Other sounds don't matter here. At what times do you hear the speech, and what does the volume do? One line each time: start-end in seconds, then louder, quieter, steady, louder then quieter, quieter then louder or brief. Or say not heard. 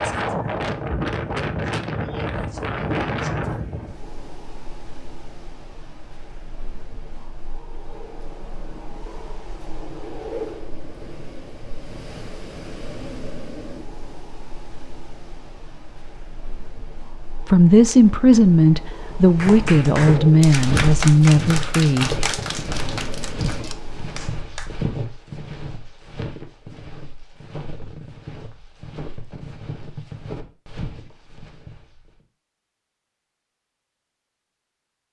17.4-22.1 steady.